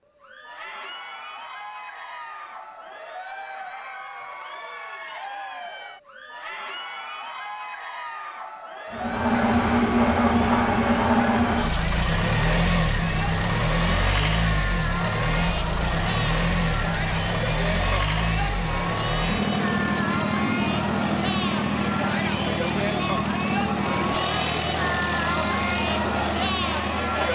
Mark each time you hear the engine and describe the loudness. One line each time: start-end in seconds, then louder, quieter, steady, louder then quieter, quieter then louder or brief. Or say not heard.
8.9-27.3 quieter.